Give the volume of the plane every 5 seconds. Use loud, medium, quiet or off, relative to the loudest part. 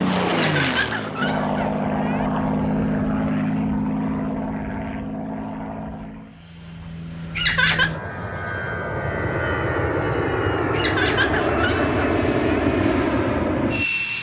loud, medium, loud.